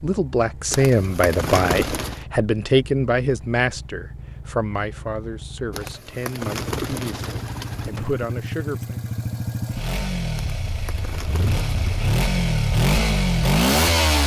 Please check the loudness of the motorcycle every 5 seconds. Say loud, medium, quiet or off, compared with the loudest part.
quiet, medium, loud.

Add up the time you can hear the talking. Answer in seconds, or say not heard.
9 s.